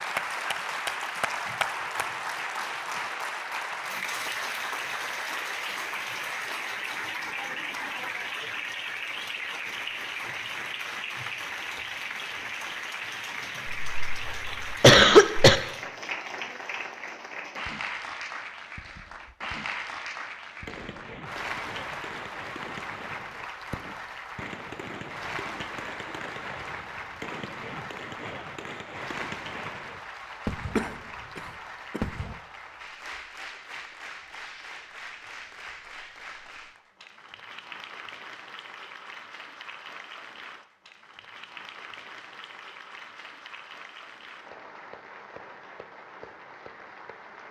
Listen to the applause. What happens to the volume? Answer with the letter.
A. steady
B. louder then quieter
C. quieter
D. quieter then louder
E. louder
C.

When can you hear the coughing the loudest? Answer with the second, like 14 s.
15 s.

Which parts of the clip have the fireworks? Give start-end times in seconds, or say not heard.
20.6-32.4.